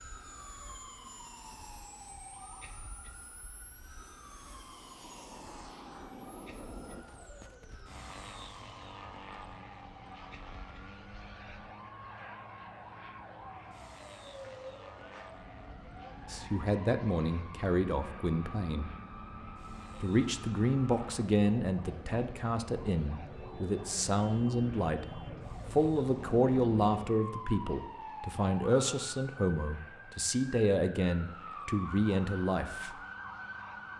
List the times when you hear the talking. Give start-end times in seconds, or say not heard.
16.3-18.9, 20.0-33.0.